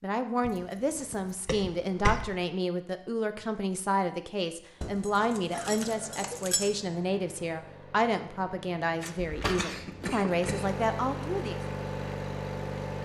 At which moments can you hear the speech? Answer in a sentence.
You can hear the speech from 0.0 to 11.6 s.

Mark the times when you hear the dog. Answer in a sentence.
You can't hear the dog here.